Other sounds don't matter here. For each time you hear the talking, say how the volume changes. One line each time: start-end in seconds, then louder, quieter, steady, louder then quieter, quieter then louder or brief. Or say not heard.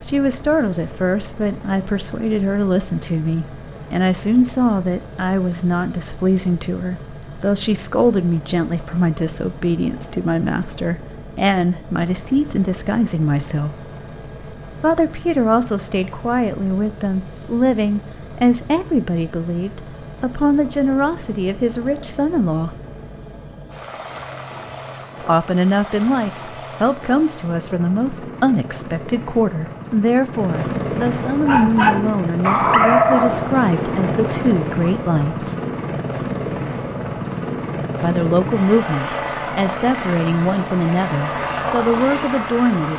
0.1-13.8 steady
14.8-22.7 steady
25.2-35.5 steady
38.0-42.9 steady.